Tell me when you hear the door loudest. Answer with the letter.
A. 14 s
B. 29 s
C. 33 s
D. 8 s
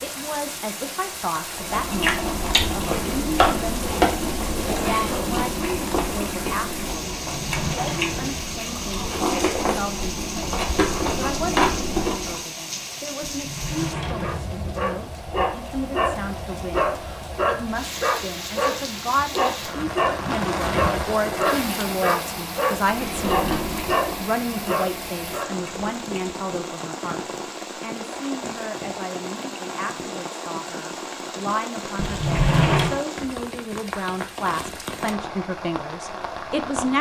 C.